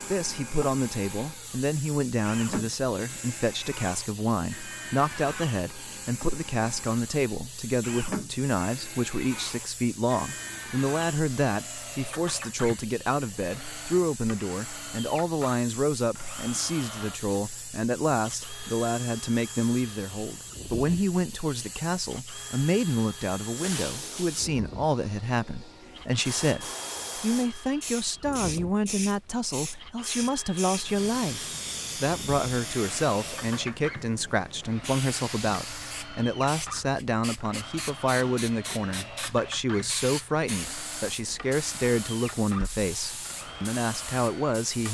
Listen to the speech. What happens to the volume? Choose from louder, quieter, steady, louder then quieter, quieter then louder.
steady.